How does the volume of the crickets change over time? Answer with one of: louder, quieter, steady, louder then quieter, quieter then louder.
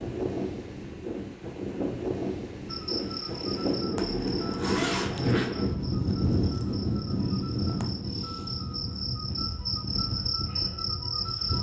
quieter then louder.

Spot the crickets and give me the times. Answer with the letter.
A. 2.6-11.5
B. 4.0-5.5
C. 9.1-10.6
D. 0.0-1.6
A.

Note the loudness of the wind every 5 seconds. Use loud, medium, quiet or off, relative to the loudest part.
loud, loud, medium.